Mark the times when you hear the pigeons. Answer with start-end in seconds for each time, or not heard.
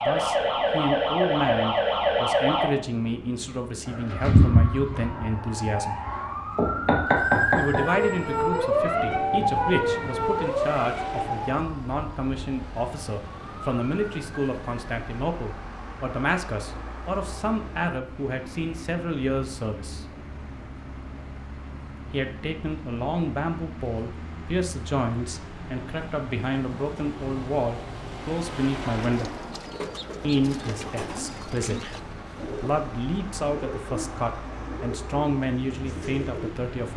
29.0-36.5.